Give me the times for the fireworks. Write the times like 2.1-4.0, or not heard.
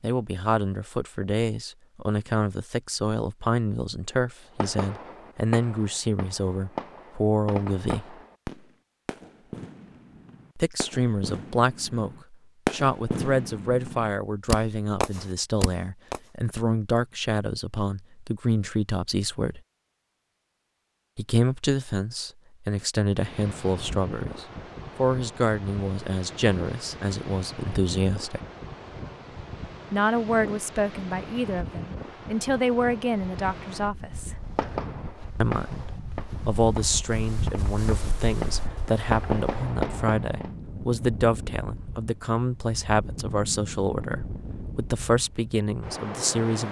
4.6-16.2, 34.5-40.5.